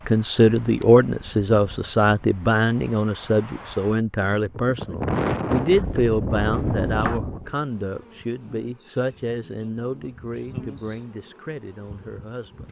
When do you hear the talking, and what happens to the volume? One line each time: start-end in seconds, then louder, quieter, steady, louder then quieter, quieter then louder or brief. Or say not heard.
0.1-12.6 quieter.